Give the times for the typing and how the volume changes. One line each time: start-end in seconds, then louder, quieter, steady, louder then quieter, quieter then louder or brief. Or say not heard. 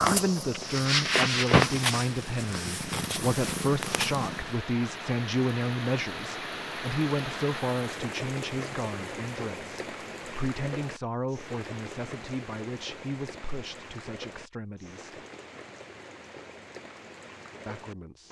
not heard.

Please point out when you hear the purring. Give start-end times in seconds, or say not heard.
0.0-4.6.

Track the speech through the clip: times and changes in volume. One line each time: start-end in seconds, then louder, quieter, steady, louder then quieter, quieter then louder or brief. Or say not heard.
0.0-15.1 quieter
17.6-18.2 brief.